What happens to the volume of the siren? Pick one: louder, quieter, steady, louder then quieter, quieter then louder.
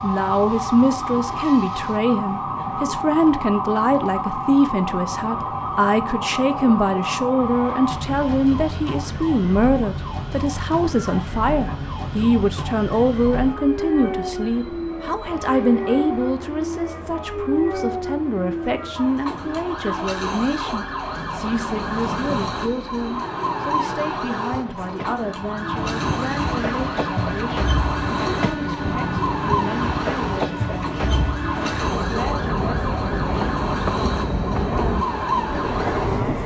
steady.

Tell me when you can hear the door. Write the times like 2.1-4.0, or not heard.
21.1-22.6.